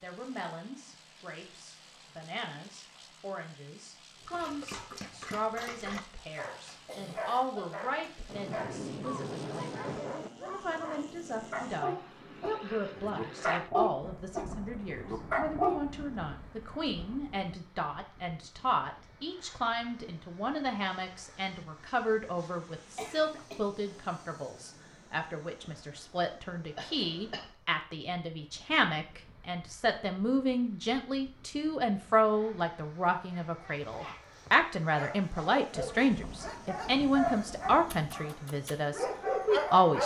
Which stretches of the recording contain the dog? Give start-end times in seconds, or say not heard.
4.2-15.8, 33.3-40.0.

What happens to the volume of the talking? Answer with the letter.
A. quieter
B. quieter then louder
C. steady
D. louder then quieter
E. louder
E.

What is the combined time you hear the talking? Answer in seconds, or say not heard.
40 s.